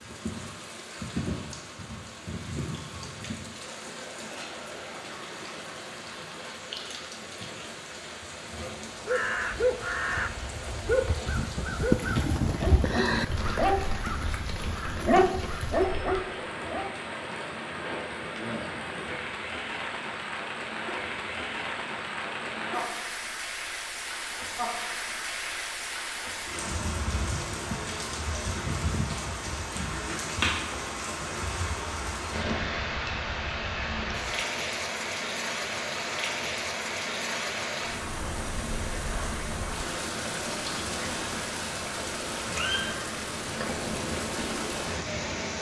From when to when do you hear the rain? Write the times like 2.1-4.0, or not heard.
0.0-45.5.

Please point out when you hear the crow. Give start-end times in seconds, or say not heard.
8.9-16.2.